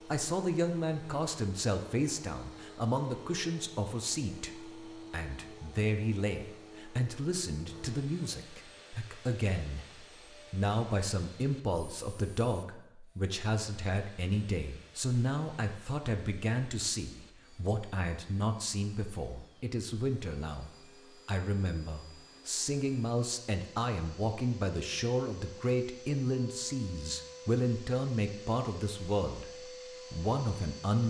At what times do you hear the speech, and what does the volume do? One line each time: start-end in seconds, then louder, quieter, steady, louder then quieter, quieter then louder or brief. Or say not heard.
0.1-31.0 steady.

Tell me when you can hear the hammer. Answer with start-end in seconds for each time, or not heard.
not heard.